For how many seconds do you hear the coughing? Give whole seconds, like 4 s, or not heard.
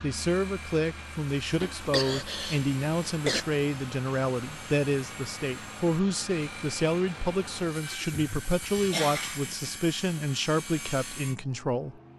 4 s.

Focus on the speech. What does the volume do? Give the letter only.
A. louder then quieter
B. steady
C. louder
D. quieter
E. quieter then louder
B.